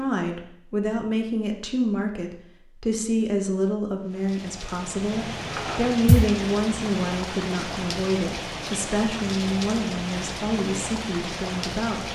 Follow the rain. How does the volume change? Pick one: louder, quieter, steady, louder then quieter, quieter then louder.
steady.